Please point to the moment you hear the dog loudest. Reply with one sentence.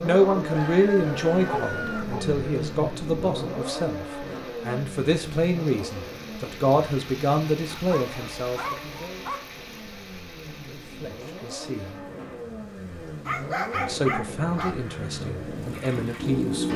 The volume of the dog peaks at 14 seconds.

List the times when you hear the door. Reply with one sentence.
You can't hear the door here.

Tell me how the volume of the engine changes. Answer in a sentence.
The volume of the engine goes down, then up.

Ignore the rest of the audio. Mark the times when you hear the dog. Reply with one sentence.
You can hear the dog from 1.4 to 2.2 s, from 7.7 to 9.4 s and from 13.2 to 14.8 s.